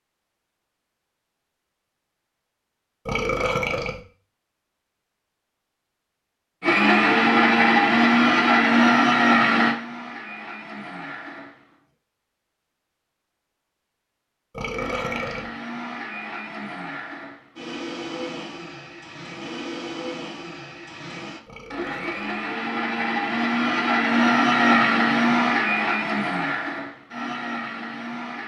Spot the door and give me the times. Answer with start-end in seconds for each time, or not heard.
not heard.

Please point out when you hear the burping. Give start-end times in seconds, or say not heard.
3.0-4.0, 14.5-15.5, 21.4-22.4.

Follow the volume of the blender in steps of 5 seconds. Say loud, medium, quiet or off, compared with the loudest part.
off, loud, quiet, quiet, medium, medium.